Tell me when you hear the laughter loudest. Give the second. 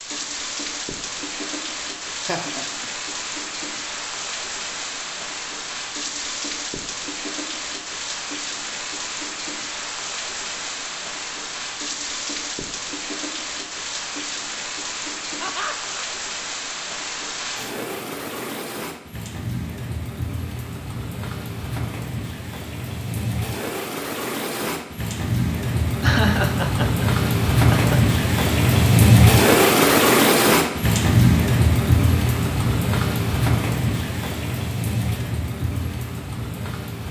26 s.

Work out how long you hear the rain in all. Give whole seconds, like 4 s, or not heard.
37 s.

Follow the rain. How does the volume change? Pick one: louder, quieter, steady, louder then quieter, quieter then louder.
louder.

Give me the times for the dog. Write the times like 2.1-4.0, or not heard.
not heard.